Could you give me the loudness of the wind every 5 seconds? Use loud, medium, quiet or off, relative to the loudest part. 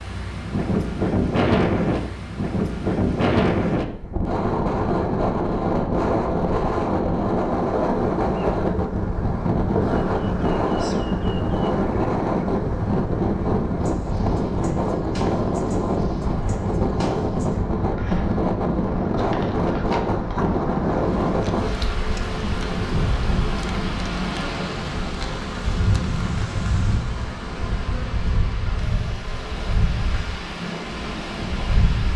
loud, loud, loud, loud, loud, medium, medium.